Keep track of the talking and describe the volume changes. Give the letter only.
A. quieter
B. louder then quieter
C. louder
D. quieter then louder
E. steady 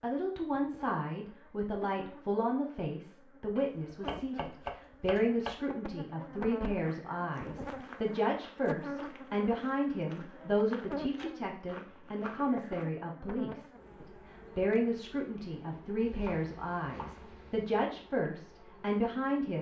E.